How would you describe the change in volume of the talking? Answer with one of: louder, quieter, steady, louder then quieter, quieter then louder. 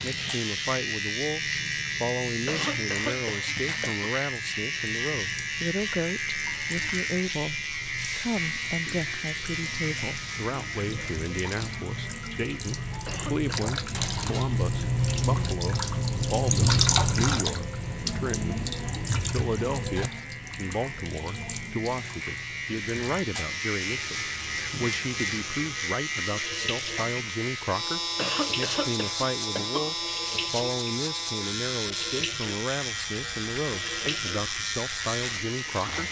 steady.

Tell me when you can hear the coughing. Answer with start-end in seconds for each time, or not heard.
2.5-4.0, 13.1-13.5, 28.1-29.9.